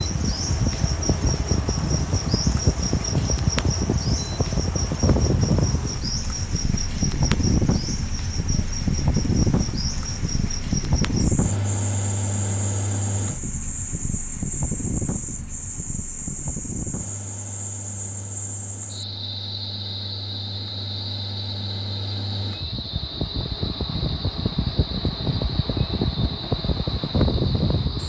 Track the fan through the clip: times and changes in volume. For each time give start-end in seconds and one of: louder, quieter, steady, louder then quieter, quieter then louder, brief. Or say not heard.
0.0-28.0 quieter then louder.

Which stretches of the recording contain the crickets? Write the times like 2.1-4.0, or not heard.
0.0-28.0.